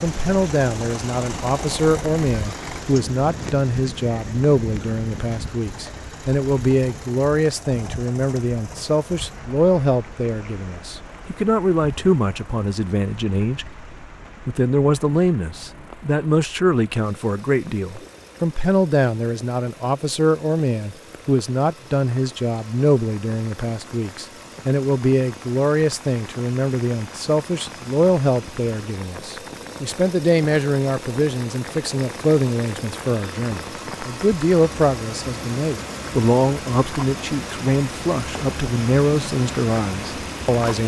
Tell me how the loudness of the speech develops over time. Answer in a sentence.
The loudness of the speech stays about the same.